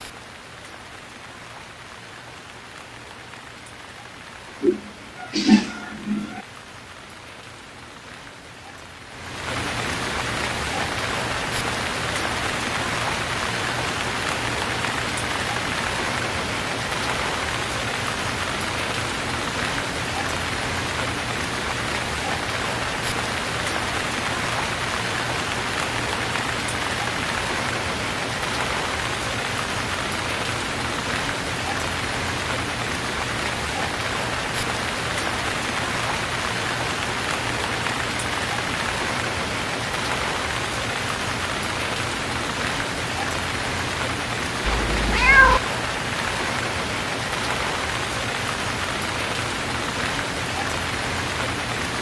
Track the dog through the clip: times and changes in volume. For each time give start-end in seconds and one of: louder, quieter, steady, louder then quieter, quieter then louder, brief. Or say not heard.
not heard.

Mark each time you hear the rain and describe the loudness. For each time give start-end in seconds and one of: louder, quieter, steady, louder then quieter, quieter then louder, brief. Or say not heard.
0.0-51.9 louder.